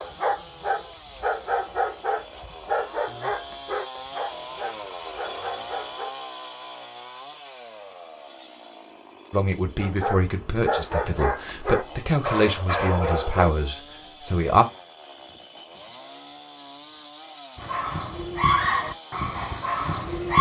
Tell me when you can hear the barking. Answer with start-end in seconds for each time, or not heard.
0.0-6.1, 9.8-13.6, 17.6-20.3.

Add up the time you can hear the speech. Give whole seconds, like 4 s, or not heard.
5 s.